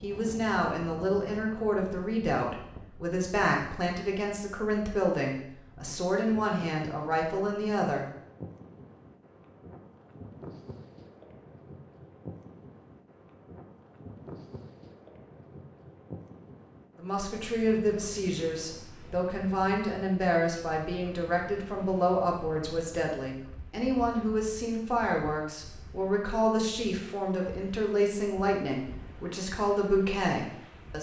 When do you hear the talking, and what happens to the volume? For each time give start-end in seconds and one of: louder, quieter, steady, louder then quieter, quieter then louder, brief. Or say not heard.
0.0-8.1 steady
16.9-30.9 steady.